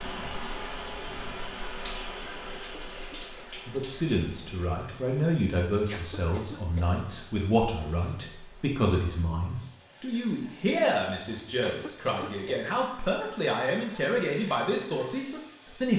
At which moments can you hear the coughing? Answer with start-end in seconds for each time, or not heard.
2.5-3.5, 5.9-6.9, 11.6-12.5.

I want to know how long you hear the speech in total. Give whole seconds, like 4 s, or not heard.
12 s.